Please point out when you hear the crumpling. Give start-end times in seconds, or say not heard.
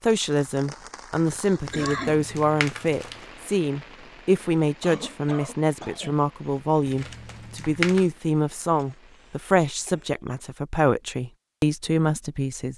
1.6-3.2, 6.8-8.1.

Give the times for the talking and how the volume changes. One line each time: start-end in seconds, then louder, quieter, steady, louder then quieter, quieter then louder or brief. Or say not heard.
0.0-12.7 steady.